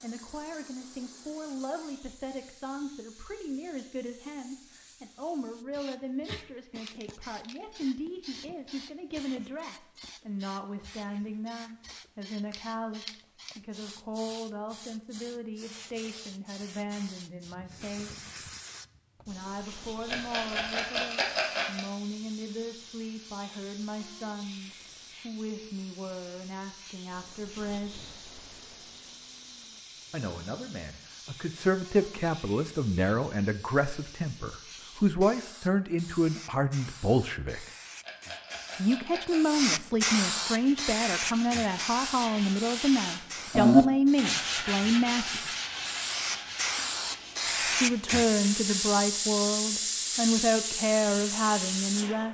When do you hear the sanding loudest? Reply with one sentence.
The volume of the sanding peaks at 44 seconds.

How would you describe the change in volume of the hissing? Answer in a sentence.
The loudness of the hissing goes up.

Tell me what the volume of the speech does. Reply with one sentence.
The volume of the speech goes up.